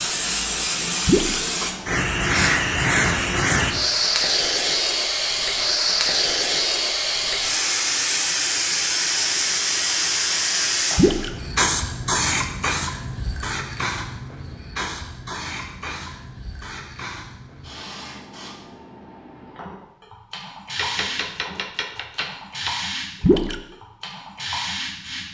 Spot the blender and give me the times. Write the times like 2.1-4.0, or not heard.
not heard.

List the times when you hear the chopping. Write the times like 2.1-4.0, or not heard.
20.8-22.7.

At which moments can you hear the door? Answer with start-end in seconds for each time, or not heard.
not heard.